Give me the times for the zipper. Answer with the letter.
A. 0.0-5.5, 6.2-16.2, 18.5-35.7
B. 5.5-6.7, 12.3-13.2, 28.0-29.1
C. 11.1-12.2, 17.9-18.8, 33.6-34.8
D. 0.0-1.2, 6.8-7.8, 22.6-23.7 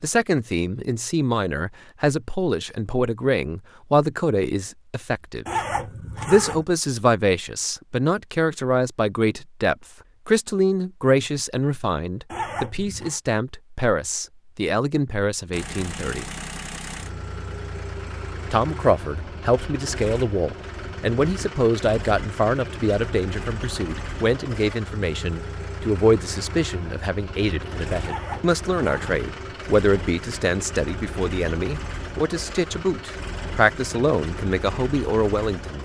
B.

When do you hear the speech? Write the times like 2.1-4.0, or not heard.
0.0-5.5, 6.2-16.2, 18.5-35.7.